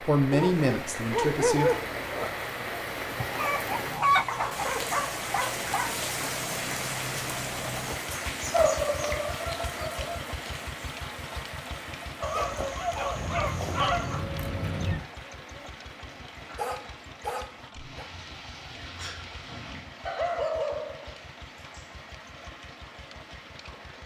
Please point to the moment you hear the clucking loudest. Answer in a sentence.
The volume of the clucking peaks at 4 seconds.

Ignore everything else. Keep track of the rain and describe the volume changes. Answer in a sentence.
The loudness of the rain goes down.